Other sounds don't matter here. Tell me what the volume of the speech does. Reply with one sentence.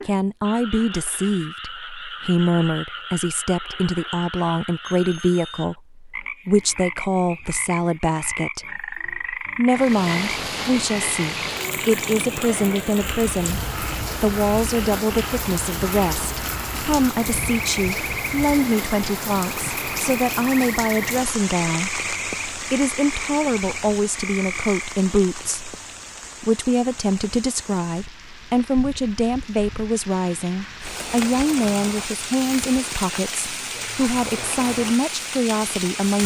The loudness of the speech stays about the same.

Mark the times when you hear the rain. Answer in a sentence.
You can hear the rain from 9.7 to 36.2 s.